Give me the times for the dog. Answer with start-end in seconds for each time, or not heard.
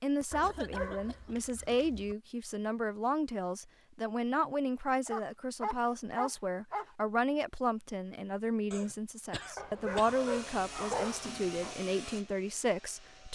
0.3-2.1, 5.0-6.8, 9.6-11.8.